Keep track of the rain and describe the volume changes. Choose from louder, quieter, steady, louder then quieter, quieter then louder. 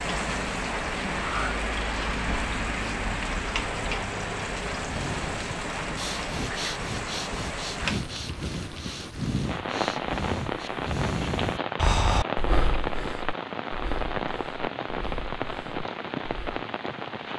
steady.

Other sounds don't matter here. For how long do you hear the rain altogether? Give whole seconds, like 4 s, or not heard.
17 s.